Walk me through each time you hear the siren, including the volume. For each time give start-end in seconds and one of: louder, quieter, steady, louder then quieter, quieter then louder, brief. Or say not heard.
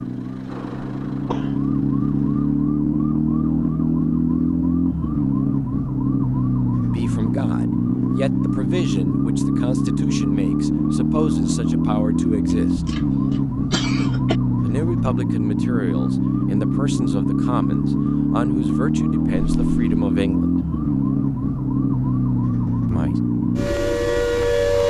0.0-24.8 steady.